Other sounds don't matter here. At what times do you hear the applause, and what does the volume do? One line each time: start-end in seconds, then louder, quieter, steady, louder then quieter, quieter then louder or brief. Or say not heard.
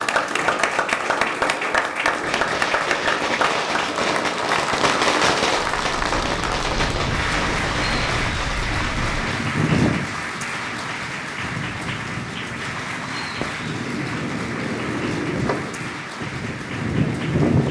0.0-17.6 quieter.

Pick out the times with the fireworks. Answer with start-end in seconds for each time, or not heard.
2.2-9.4.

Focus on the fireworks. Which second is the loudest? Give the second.
5 s.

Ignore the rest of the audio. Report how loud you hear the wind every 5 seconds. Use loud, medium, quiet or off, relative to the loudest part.
medium, loud, medium, loud.